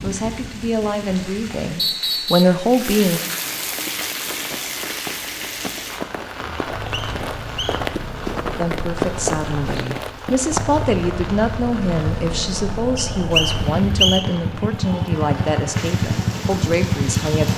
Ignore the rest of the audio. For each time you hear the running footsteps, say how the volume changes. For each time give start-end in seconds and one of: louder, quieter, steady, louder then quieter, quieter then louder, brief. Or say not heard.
3.7-10.8 louder.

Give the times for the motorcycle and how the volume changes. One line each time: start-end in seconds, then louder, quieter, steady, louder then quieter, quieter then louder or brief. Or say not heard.
0.0-1.6 brief
6.7-17.5 louder.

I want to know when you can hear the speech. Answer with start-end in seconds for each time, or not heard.
0.0-3.2, 8.6-17.5.